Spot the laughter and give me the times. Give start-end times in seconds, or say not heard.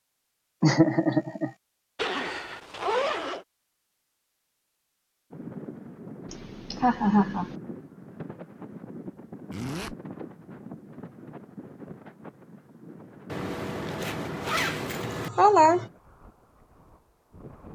0.6-1.5, 6.3-7.5, 15.0-15.8.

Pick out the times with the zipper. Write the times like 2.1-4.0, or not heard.
1.9-3.5, 9.5-9.9, 13.3-15.3.